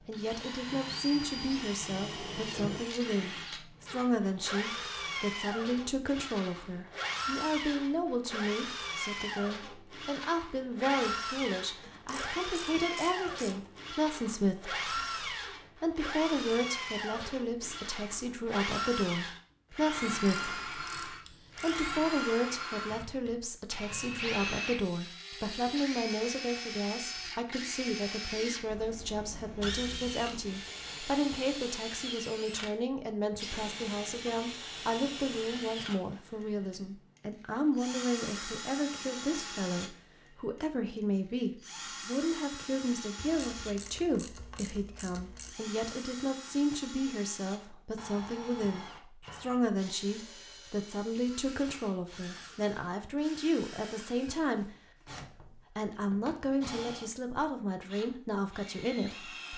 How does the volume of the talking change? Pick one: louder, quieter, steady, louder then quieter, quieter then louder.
steady.